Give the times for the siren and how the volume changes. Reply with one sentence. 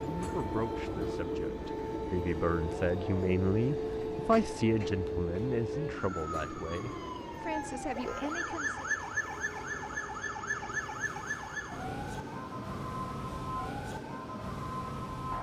The siren can be heard from 0.0 to 15.3 s, at a steady volume.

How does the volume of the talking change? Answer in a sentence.
The loudness of the talking goes up, then down.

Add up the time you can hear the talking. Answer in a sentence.
You can hear the talking for 9 seconds altogether.